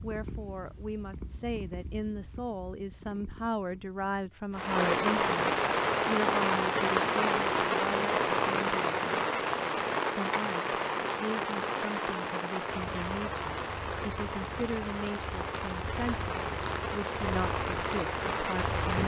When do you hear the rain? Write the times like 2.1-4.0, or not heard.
4.5-19.0.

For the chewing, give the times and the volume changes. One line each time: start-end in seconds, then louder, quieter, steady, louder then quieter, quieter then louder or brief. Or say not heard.
not heard.